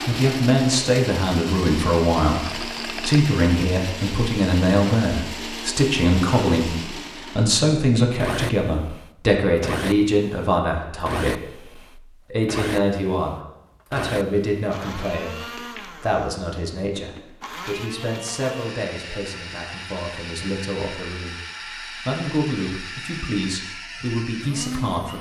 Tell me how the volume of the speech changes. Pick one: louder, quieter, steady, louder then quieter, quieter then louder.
quieter.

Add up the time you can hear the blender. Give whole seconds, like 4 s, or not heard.
25 s.